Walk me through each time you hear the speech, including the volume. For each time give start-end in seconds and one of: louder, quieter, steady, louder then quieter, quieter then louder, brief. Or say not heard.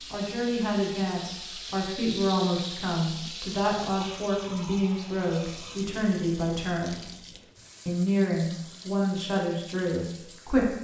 0.0-7.0 steady
7.8-10.7 brief.